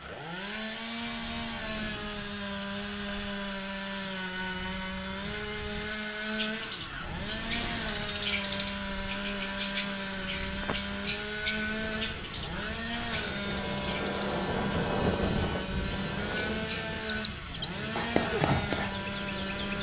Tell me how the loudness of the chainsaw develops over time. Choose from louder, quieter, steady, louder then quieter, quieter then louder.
steady.